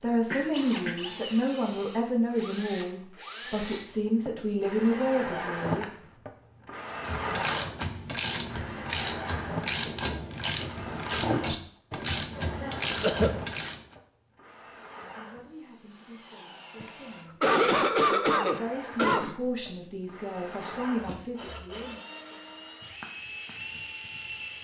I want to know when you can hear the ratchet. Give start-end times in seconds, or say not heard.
7.0-13.8.